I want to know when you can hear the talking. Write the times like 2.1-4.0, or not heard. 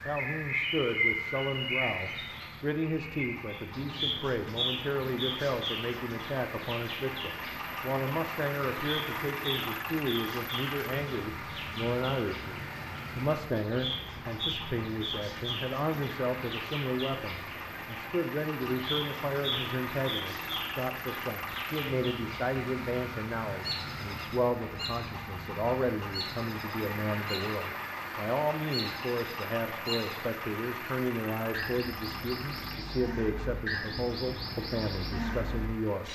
0.1-36.0.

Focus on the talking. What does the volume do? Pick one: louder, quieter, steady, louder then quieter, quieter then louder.
steady.